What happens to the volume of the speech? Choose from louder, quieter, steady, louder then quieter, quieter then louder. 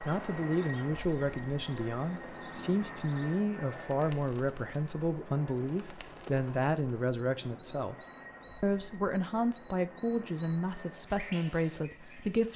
steady.